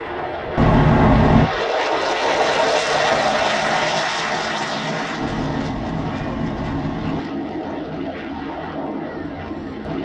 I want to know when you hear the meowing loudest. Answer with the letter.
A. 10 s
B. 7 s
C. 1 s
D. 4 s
C.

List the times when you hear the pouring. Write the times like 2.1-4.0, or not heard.
not heard.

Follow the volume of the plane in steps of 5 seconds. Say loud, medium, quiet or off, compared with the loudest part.
loud, medium.